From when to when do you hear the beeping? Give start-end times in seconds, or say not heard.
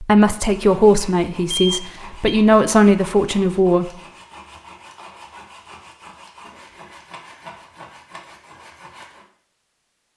1.6-2.4.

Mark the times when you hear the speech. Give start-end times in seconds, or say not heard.
0.0-3.9.